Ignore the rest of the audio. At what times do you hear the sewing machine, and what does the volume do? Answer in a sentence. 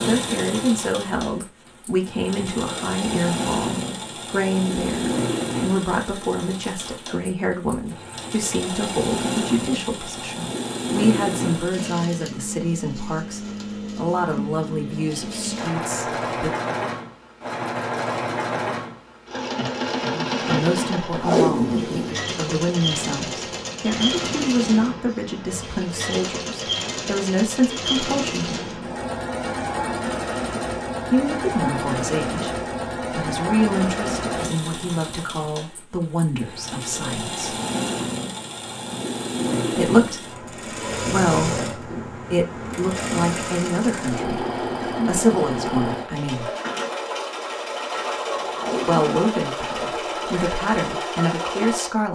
You can hear the sewing machine from 0.0 to 52.0 s, at a steady volume.